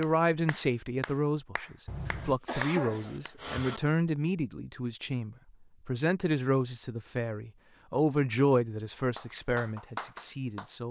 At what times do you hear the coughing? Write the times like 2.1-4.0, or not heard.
1.9-3.8.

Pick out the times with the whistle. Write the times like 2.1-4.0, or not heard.
not heard.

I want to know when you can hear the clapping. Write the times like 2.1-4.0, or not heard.
0.0-3.4, 8.9-10.7.